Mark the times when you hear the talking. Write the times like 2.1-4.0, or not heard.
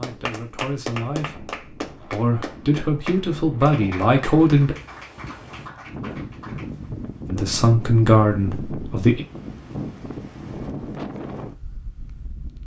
0.0-4.8, 7.2-9.2.